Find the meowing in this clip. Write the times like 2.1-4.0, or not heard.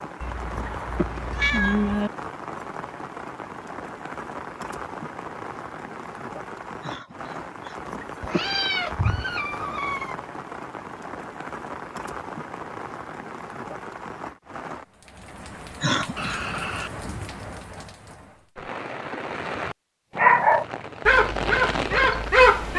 0.2-2.1, 8.2-10.2, 16.1-17.4.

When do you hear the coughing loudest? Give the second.
16 s.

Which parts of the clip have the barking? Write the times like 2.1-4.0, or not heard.
20.1-22.7.